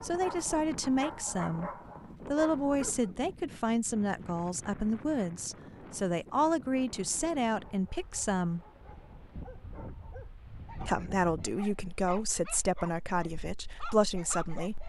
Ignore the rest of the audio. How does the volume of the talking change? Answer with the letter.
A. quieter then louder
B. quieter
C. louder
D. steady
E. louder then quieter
D.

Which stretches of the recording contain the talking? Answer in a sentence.
The talking can be heard from 0.0 to 8.6 s and from 10.8 to 14.8 s.